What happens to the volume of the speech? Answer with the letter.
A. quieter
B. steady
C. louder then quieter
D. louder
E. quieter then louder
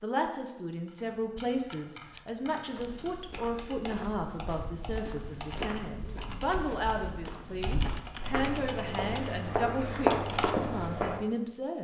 B.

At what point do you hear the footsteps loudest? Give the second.
10 s.